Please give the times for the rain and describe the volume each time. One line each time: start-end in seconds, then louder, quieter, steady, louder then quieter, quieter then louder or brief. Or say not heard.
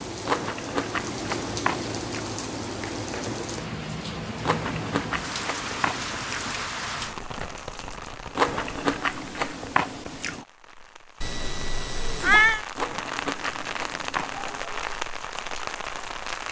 0.0-16.4 quieter then louder.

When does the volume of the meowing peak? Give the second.
12 s.